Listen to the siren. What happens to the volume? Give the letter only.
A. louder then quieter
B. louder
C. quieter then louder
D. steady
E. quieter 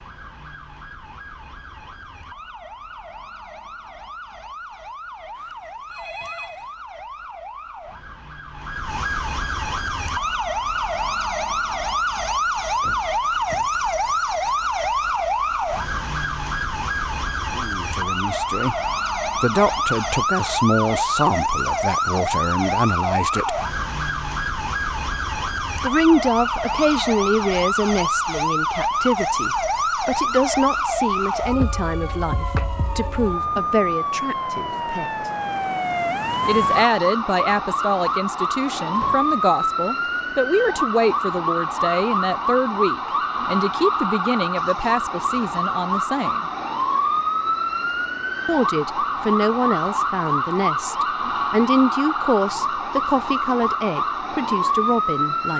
B.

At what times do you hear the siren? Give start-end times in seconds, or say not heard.
0.0-55.5.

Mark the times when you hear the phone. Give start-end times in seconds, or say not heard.
5.3-6.8.